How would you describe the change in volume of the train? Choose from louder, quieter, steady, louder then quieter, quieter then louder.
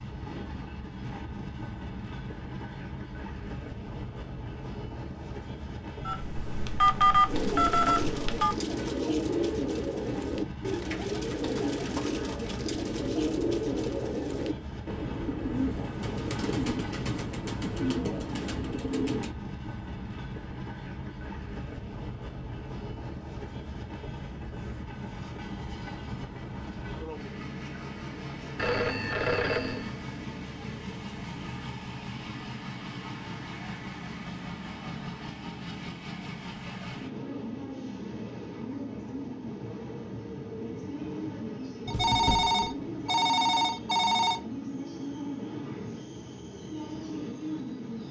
steady.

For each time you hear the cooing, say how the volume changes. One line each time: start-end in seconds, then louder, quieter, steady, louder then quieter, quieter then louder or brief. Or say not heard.
7.2-19.4 steady.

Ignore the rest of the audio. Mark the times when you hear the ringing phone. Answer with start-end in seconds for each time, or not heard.
6.0-8.6, 28.6-29.9, 41.9-44.4.